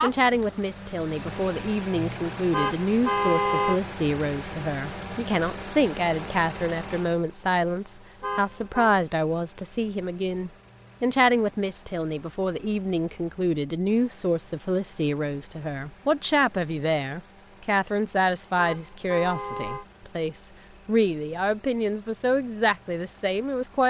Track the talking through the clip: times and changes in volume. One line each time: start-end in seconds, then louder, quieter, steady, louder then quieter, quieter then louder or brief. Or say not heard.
0.0-23.8 steady.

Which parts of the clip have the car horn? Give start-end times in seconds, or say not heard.
2.5-3.8, 8.2-8.9, 18.6-19.9.